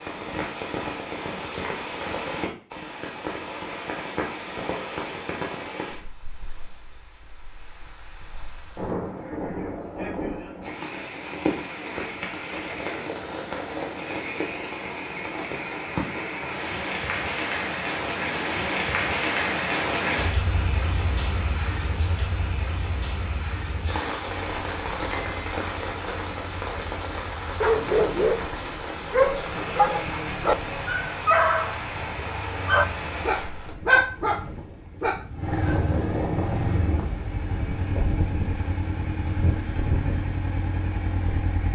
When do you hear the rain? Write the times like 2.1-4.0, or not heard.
0.0-33.8.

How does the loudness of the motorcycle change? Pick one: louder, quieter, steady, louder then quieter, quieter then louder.
louder.